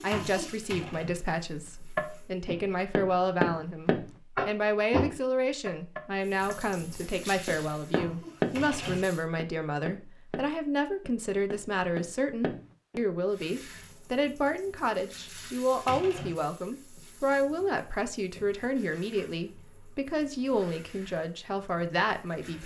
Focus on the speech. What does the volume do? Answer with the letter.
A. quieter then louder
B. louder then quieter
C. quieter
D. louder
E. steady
E.